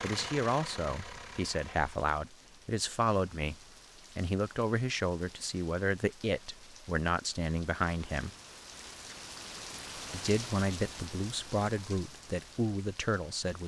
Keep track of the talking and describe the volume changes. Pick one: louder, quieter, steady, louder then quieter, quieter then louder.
steady.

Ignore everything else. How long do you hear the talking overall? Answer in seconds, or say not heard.
12 s.